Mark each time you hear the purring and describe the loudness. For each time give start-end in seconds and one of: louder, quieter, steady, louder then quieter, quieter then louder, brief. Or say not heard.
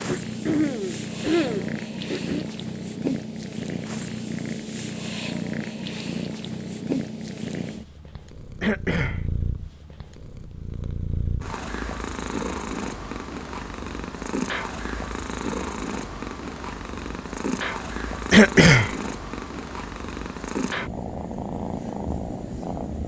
0.0-23.0 steady.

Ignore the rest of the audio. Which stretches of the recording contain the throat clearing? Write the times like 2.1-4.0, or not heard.
0.1-2.5, 8.6-9.2, 18.3-18.9.